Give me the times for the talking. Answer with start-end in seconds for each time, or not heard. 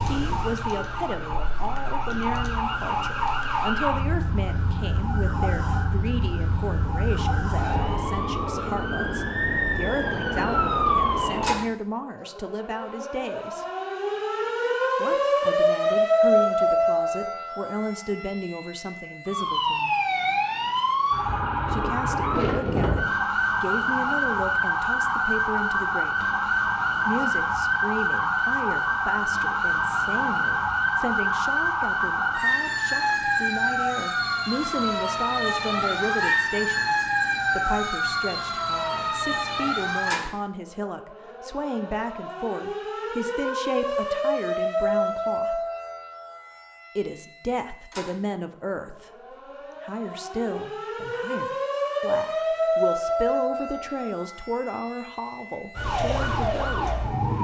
0.0-13.7, 14.9-19.9, 21.7-26.3, 27.1-45.6, 47.0-49.1, 49.8-57.1.